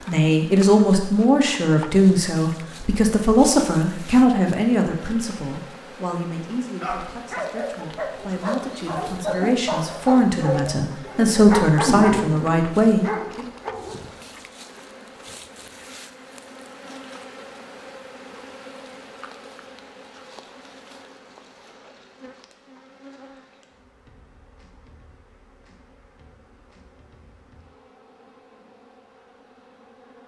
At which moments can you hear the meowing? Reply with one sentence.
You can't hear the meowing here.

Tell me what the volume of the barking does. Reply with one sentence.
The loudness of the barking goes up, then down.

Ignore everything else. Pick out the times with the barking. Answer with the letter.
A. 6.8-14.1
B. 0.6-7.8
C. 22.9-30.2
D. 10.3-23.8
A.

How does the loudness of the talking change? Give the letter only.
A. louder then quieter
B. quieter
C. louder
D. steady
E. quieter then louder
E.